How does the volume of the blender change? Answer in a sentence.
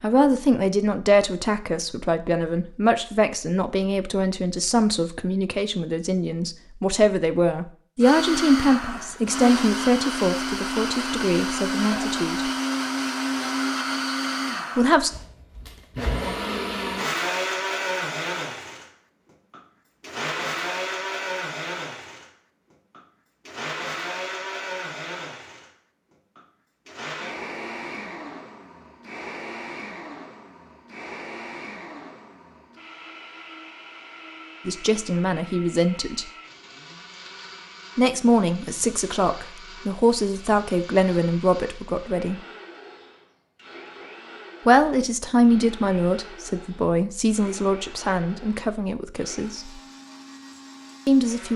The loudness of the blender goes down.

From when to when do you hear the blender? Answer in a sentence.
The blender can be heard from 8.0 to 51.5 s.